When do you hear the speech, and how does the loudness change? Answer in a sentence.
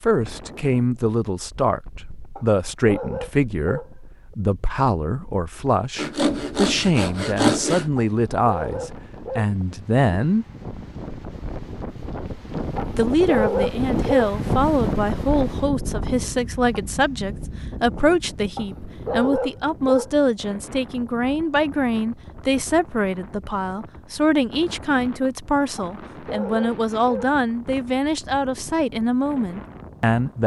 You can hear the speech from 0.0 to 10.4 s, at a steady volume; and from 12.9 to 30.4 s, at a steady volume.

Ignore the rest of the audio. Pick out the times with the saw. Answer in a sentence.
The saw can be heard from 6.0 to 7.9 s.